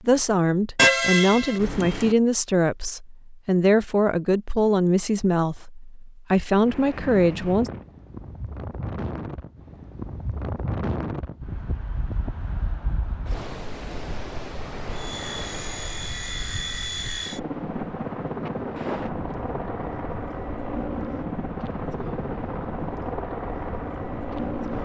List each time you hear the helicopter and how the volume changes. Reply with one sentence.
You can hear the helicopter from 14.9 to 24.7 s, at a steady volume.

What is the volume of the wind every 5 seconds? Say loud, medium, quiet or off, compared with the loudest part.
off, loud, loud, loud, medium.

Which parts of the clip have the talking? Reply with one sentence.
You can hear the talking from 0.0 to 7.7 s.